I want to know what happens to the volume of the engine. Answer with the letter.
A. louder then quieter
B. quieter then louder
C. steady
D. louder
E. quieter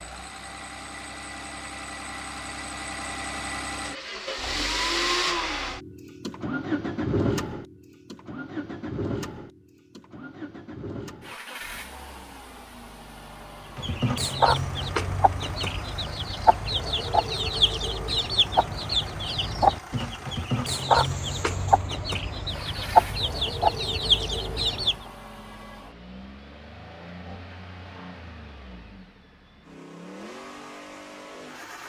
E.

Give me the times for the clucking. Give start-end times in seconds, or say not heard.
13.8-25.0.